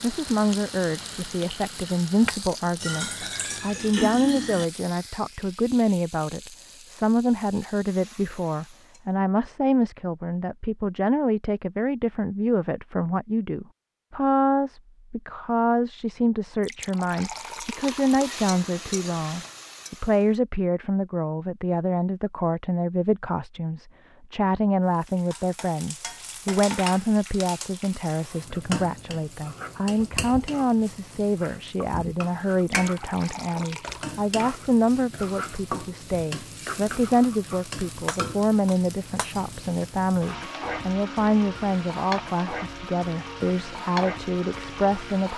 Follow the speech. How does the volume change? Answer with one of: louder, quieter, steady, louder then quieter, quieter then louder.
steady.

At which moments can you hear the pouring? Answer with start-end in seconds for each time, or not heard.
2.8-4.7, 16.6-18.3, 32.6-34.1.